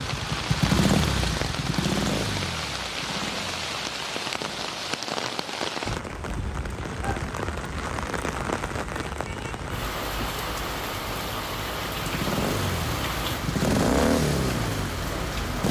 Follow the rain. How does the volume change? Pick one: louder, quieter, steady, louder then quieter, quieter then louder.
steady.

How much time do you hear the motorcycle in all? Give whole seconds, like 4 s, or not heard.
9 s.